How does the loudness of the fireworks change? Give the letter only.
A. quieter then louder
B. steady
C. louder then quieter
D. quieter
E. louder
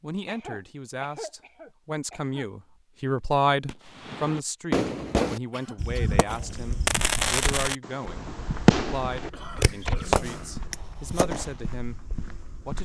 A.